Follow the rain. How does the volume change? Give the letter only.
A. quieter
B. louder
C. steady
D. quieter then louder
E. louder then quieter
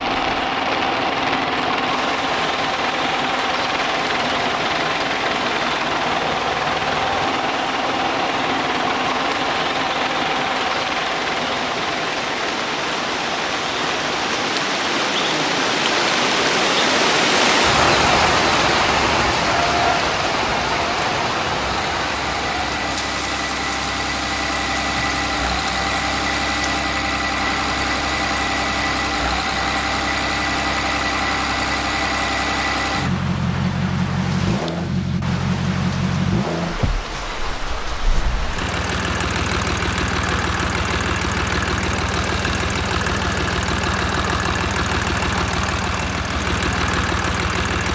E.